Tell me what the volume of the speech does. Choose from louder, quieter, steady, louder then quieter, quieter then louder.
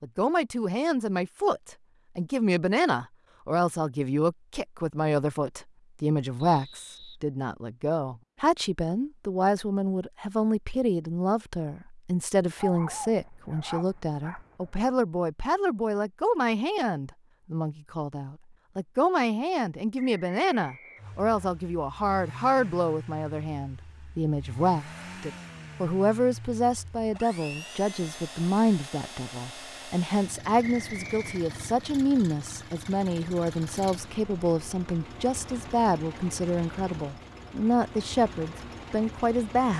steady.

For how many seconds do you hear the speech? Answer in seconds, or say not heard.
40 s.